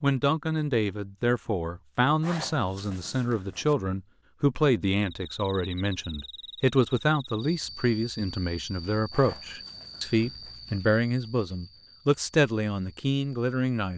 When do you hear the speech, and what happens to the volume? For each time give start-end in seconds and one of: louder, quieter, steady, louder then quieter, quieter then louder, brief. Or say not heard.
0.0-13.9 steady.